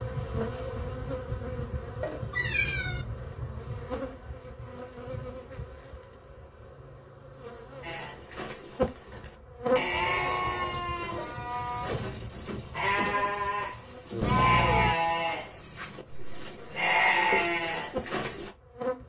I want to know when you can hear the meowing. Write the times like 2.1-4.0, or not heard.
2.3-3.0, 14.2-14.9.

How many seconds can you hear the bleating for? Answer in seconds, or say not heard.
11 s.